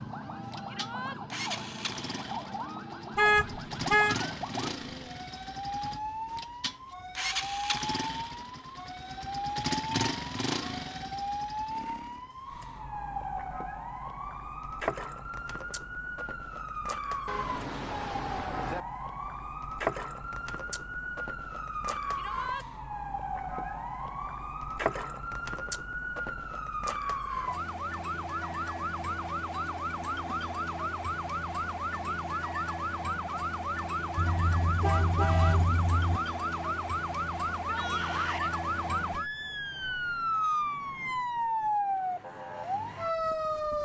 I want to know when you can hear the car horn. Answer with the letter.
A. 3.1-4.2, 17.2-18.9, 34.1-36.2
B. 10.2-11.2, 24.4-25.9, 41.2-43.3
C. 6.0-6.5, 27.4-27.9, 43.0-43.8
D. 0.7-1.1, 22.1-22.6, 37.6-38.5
A.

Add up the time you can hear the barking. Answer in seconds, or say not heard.
not heard.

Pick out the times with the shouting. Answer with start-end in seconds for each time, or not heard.
0.7-1.1, 22.1-22.6, 37.6-38.5.